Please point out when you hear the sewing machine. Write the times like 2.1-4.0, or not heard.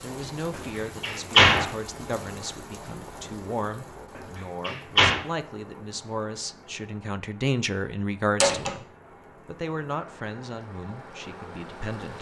not heard.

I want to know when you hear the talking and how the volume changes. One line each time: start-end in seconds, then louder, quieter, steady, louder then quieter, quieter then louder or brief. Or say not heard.
0.0-8.8 louder
9.4-12.1 brief.